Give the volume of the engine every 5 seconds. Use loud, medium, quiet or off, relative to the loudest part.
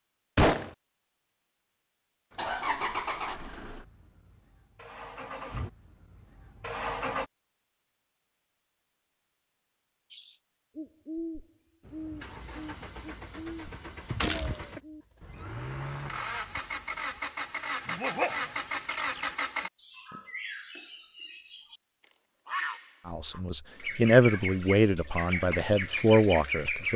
loud, loud, medium, loud, off, off.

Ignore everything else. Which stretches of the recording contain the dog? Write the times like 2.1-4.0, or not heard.
17.9-18.5.